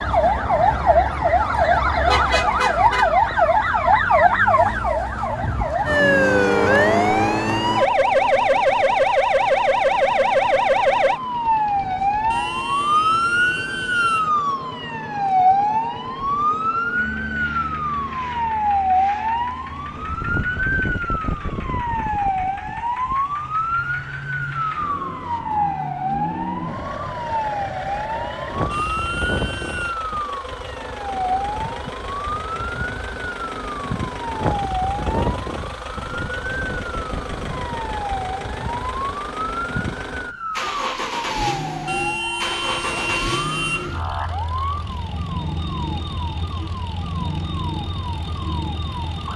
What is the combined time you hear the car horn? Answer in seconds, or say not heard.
5 s.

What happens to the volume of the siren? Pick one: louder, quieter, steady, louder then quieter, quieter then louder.
quieter.